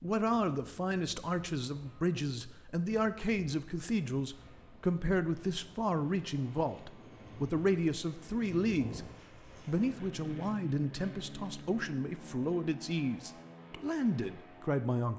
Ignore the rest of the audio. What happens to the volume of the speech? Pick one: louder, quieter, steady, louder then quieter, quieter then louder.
steady.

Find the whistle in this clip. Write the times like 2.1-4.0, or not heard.
not heard.